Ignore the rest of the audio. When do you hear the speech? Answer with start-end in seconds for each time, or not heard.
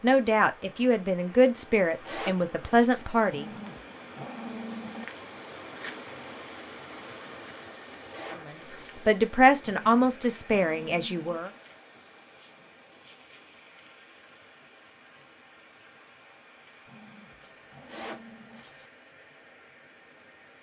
0.0-3.5, 8.4-11.5.